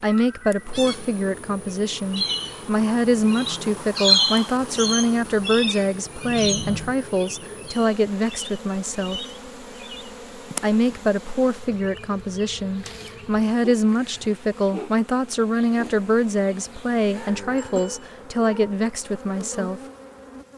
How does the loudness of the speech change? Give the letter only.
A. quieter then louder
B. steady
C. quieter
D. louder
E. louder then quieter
B.